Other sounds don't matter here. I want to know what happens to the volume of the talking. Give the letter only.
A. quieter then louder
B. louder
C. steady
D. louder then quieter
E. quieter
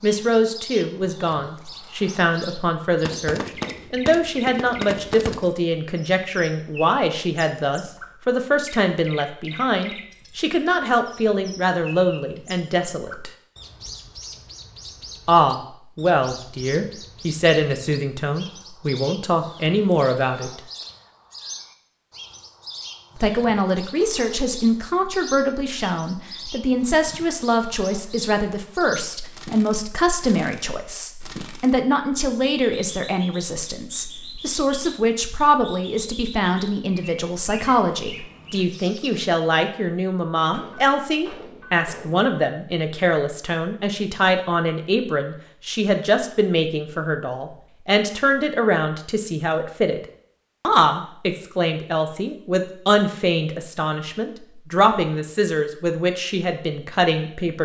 C.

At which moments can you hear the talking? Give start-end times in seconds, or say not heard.
0.0-13.3, 15.2-20.6, 23.1-50.0, 50.6-57.6.